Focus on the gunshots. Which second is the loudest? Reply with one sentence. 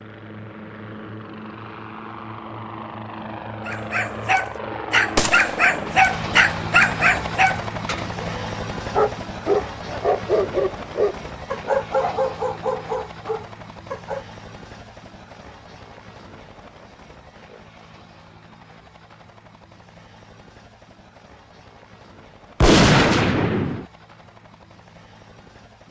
The loudest moment of the gunshots is at 23 seconds.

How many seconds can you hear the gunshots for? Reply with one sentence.
You can hear the gunshots for 2 seconds altogether.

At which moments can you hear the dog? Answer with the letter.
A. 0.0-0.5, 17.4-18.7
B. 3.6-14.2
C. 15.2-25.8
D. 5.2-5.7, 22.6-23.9
B.